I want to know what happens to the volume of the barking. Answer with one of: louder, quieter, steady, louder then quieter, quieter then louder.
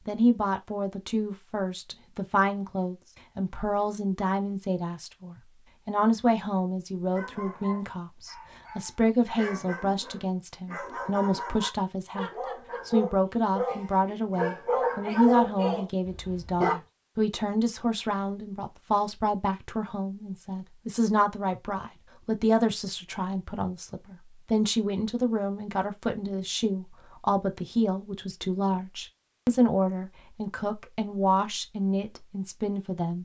louder.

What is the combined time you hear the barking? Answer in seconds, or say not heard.
10 s.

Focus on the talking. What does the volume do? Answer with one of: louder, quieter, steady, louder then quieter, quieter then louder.
steady.